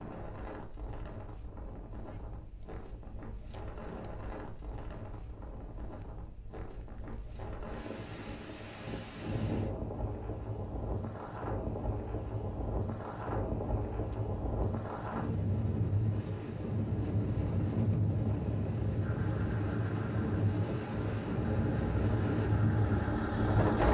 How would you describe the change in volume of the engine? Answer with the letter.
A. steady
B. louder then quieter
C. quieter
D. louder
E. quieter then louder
D.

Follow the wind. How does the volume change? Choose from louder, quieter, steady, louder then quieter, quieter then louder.
louder.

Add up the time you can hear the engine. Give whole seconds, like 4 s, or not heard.
5 s.